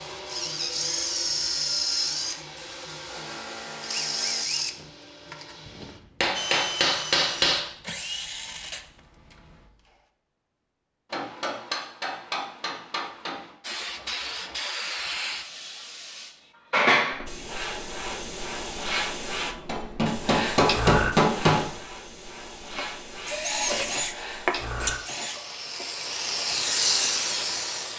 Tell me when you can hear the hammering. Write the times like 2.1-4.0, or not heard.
6.2-7.7, 11.1-13.5, 19.6-21.6.